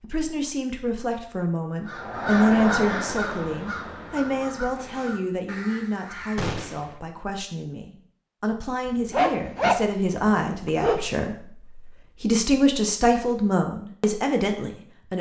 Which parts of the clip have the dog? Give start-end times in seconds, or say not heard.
8.8-11.0.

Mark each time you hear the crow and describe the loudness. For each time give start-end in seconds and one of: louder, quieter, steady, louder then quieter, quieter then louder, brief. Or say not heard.
1.9-6.5 quieter.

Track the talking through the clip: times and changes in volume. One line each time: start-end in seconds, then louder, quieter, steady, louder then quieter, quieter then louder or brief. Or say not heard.
0.0-15.1 quieter then louder.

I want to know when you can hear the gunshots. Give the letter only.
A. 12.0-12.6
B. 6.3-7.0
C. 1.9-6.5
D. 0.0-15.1
B.